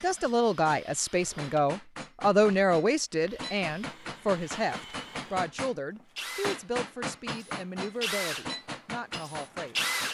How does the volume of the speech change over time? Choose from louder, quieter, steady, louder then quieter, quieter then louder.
quieter.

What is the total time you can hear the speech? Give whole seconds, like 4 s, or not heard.
10 s.